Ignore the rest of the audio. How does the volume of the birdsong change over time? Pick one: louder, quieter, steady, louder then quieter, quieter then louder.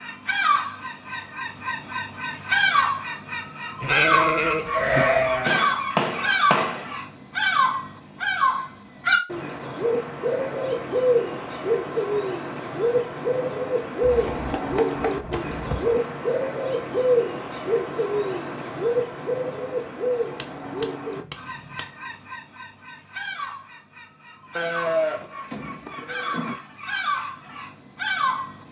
quieter.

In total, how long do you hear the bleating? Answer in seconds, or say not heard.
4 s.